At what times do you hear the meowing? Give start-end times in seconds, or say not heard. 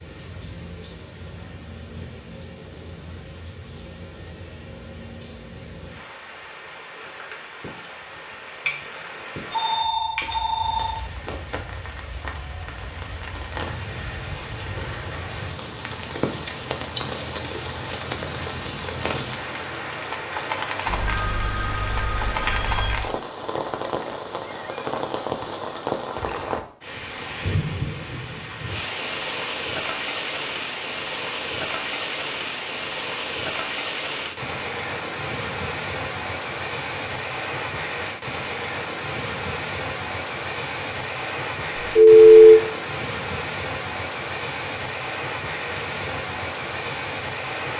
not heard.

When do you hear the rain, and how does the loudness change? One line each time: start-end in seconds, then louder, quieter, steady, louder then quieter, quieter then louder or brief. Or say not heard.
0.0-47.7 louder.